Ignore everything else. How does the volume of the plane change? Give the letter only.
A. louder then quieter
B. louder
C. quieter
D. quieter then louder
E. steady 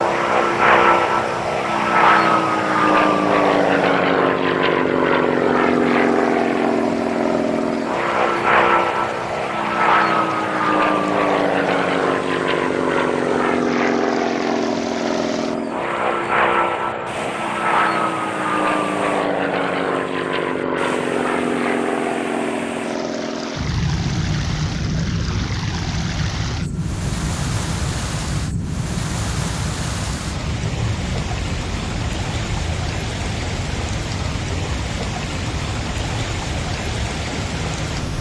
C.